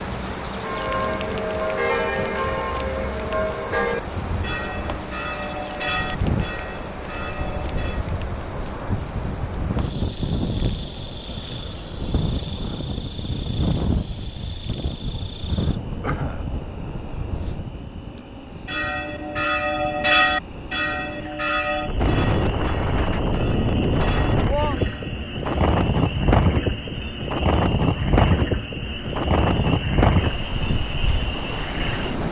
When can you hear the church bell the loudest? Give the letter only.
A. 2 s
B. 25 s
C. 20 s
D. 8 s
C.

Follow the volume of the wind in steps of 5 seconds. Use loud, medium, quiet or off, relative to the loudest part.
quiet, medium, medium, medium, loud, loud, loud.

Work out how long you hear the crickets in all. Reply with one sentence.
You can hear the crickets for 32 seconds altogether.